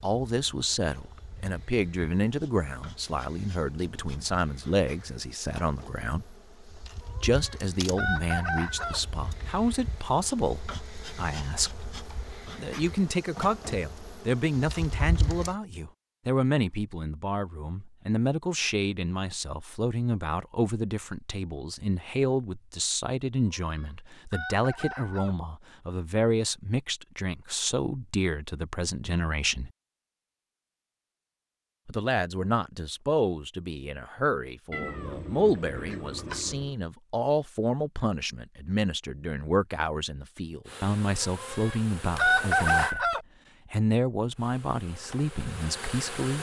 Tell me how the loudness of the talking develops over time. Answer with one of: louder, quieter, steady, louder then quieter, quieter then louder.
steady.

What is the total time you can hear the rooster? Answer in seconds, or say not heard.
6 s.